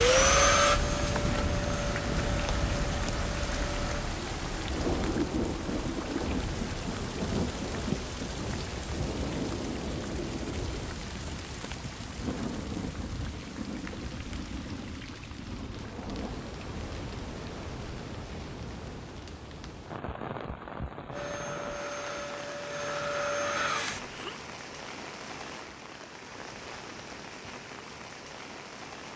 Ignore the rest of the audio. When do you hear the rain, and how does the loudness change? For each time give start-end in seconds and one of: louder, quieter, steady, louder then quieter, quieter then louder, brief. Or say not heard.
0.0-29.1 quieter.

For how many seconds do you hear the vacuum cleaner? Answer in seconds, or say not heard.
7 s.